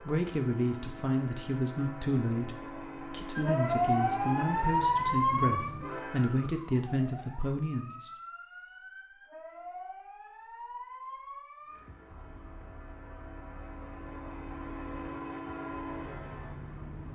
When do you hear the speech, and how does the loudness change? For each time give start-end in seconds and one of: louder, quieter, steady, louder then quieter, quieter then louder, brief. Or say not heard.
0.0-8.1 steady.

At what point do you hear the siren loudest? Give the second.
5 s.